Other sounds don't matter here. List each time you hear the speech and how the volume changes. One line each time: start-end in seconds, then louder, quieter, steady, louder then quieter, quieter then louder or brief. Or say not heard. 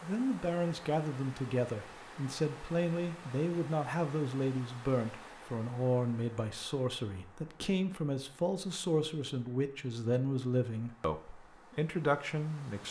0.0-12.8 steady.